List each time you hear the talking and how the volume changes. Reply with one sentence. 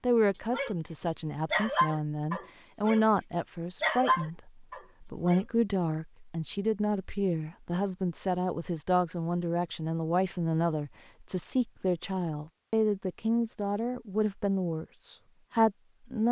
You can hear the talking from 0.0 to 16.2 s, at a steady volume.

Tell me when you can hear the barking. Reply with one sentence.
You can hear the barking from 0.3 to 5.5 s.